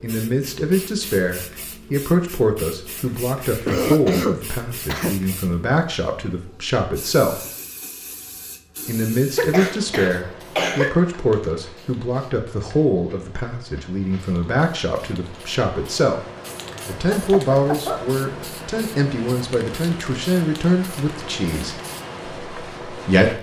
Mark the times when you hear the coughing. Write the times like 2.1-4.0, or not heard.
3.4-5.2, 9.3-11.0, 17.0-18.1.